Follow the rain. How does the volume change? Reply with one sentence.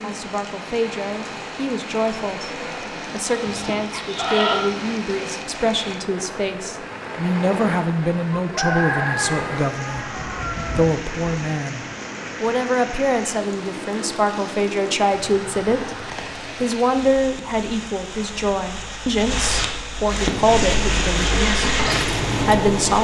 The loudness of the rain goes up.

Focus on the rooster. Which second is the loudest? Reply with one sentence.
The volume of the rooster peaks at 9 seconds.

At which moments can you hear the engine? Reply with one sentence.
You can hear the engine from 20.2 to 22.9 s.